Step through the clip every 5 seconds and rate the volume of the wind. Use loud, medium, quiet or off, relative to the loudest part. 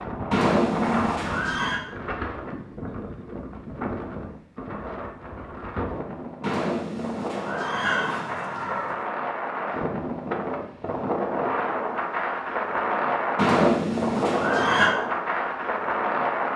medium, medium, loud, loud.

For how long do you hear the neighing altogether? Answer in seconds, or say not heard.
6 s.